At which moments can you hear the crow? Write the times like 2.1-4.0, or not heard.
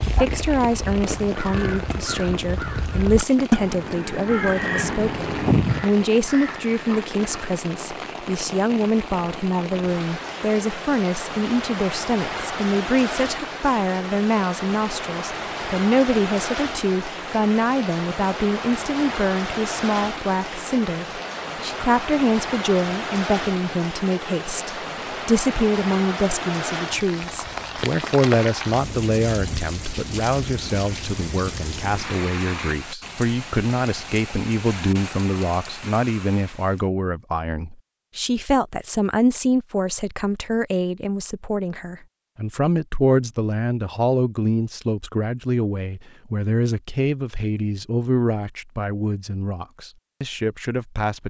0.0-7.5.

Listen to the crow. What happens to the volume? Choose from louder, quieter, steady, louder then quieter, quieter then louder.
louder then quieter.